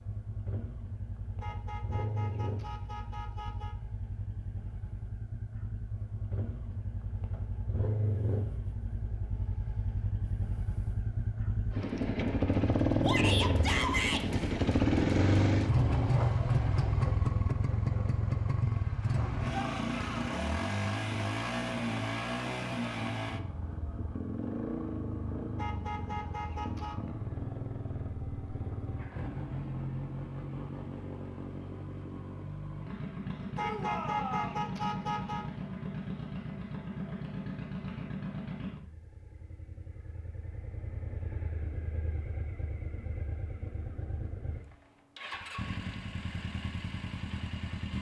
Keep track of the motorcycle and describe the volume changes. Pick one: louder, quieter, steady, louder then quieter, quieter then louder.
louder then quieter.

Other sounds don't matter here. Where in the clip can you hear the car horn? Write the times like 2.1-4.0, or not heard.
1.4-3.8, 25.6-26.9, 33.5-35.5.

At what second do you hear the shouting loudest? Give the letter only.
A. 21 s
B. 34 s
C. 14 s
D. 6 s
C.